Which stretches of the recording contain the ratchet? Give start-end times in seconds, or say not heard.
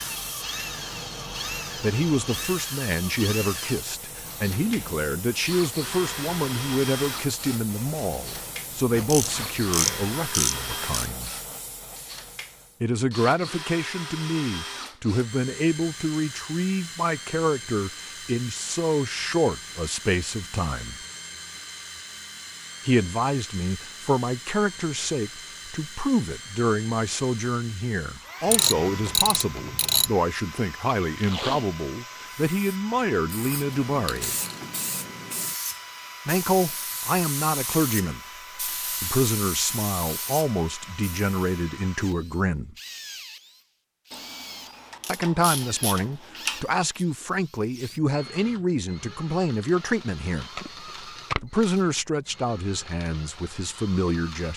9.1-11.1, 28.4-30.1, 44.1-47.0.